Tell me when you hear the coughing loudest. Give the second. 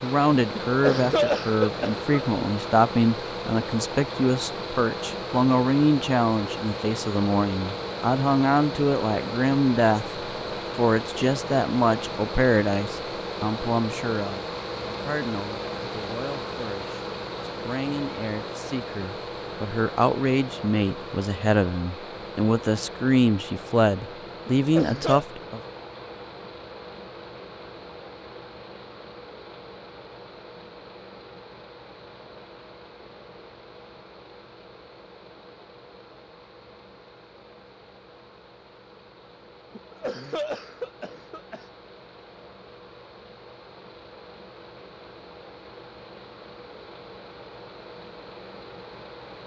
1 s.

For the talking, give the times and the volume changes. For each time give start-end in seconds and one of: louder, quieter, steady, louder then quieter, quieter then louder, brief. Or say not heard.
0.0-25.6 quieter then louder.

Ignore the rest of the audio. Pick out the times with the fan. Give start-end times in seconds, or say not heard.
0.0-49.4.